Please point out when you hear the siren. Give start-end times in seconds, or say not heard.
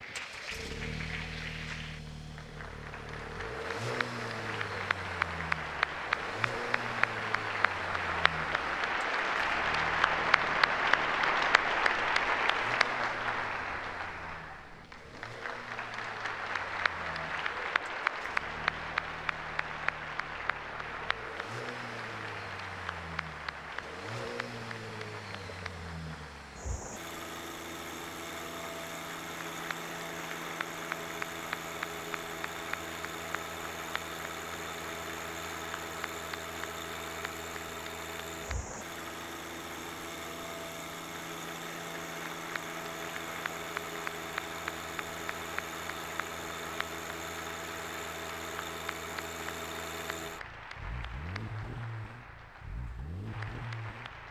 not heard.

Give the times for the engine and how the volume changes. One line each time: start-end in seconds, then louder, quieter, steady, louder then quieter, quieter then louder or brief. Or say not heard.
0.0-54.2 quieter then louder.